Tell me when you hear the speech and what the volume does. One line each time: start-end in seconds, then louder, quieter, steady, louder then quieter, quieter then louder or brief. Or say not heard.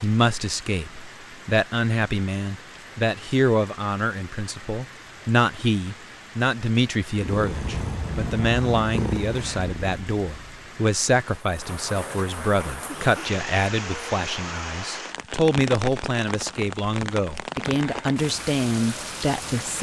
0.0-19.7 steady.